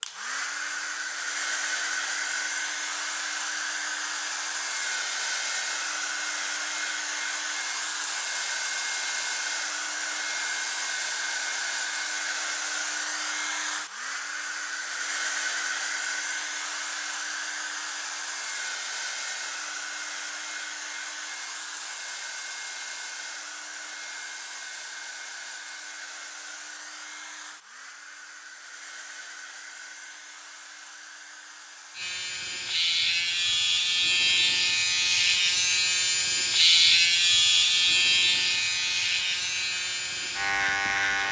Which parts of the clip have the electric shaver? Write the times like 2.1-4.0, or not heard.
31.9-41.2.